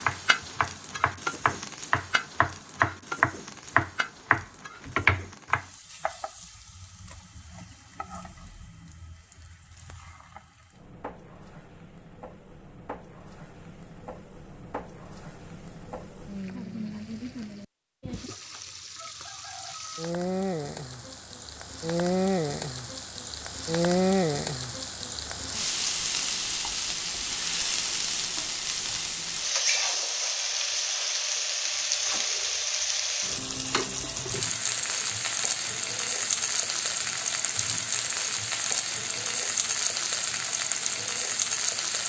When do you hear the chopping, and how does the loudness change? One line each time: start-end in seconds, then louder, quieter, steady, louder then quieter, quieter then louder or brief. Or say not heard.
0.0-5.7 louder.